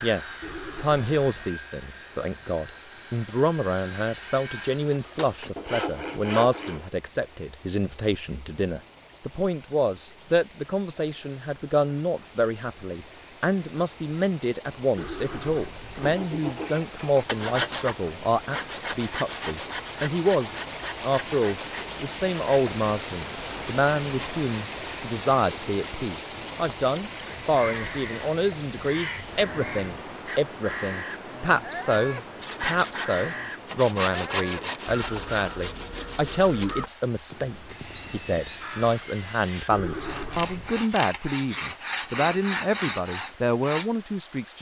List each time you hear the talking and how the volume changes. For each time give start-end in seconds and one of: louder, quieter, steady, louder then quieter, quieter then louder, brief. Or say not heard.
0.0-44.5 steady.